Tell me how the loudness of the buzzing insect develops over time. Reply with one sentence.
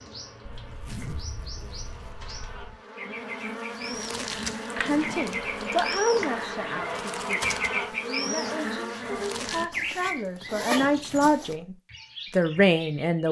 The volume of the buzzing insect goes up.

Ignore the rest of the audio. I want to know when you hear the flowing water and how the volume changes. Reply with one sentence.
You can't hear the flowing water here.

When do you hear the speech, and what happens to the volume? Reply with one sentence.
You can hear the speech from 4.8 to 13.2 s, getting quieter then louder.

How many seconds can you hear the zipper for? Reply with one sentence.
The zipper can be heard for 6 seconds in total.